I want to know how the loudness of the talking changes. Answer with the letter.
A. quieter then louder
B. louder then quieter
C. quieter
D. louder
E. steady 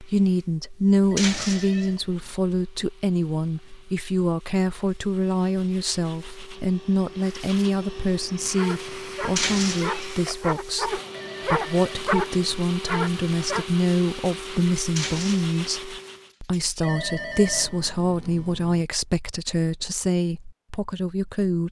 E.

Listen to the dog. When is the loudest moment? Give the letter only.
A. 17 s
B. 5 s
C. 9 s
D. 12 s
D.